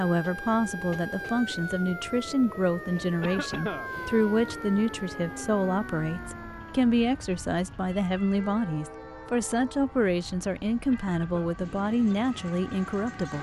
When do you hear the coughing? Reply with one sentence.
You can hear the coughing from 3.2 to 3.9 s and from 10.9 to 11.6 s.